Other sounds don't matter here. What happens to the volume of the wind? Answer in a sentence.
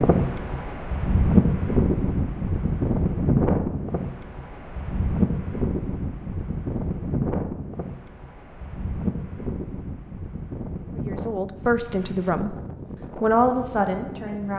The volume of the wind goes down.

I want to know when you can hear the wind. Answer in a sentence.
You can hear the wind from 0.0 to 14.5 s.